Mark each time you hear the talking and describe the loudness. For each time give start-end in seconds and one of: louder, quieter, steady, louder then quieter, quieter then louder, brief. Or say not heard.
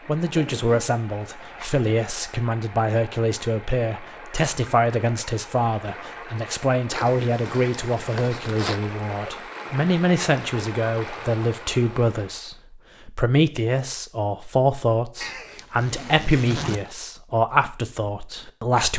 0.1-18.9 steady.